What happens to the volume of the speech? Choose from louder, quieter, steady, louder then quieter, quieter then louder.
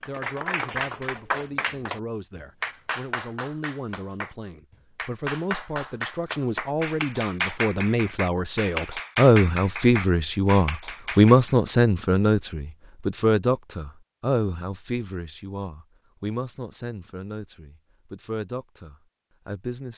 louder then quieter.